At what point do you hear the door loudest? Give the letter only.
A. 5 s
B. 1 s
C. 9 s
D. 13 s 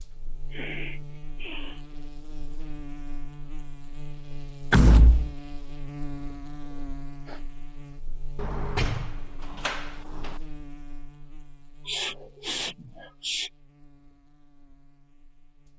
A.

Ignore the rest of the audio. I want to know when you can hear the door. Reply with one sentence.
The door can be heard from 4.7 to 5.3 s and from 8.3 to 10.4 s.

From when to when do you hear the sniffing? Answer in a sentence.
The sniffing can be heard from 0.5 to 1.8 s, from 6.7 to 7.5 s and from 11.8 to 13.5 s.